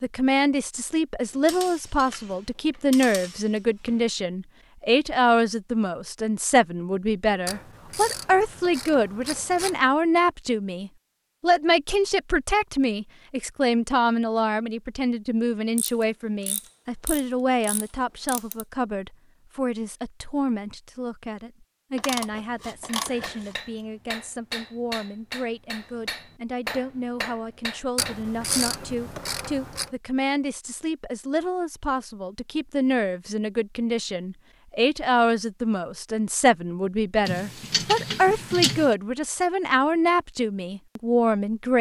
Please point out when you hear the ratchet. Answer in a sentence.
The ratchet can be heard from 1.2 to 4.0 s, from 7.5 to 9.9 s, from 15.8 to 18.6 s, from 21.9 to 23.6 s, from 27.9 to 29.9 s and from 37.2 to 39.0 s.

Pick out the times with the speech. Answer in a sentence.
You can hear the speech from 0.0 to 41.7 s.